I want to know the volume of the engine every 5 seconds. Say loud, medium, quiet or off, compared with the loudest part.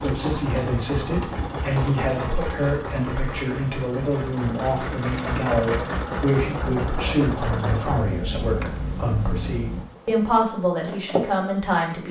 loud, loud, off.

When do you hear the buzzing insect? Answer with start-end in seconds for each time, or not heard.
8.3-12.0.